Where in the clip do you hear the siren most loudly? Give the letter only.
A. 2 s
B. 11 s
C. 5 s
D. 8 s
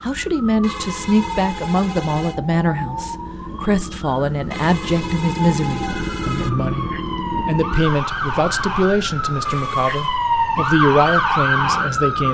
B.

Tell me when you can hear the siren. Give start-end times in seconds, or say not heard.
0.0-12.2.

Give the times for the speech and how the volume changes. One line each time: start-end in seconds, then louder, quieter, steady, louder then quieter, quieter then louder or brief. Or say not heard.
0.0-12.2 steady.